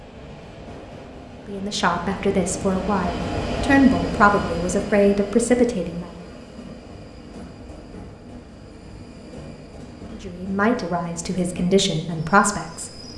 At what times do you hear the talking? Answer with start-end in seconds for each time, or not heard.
1.4-6.2, 10.1-13.0.